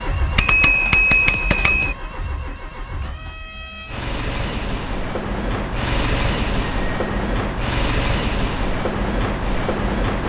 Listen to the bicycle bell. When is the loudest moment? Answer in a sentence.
The loudest moment of the bicycle bell is at 1 second.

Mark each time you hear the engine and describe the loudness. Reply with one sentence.
The engine can be heard from 0.0 to 10.2 s, getting louder.